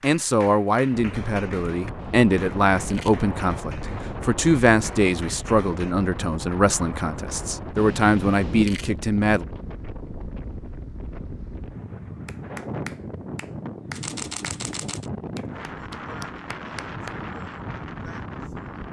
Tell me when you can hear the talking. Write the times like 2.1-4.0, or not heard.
0.0-9.4.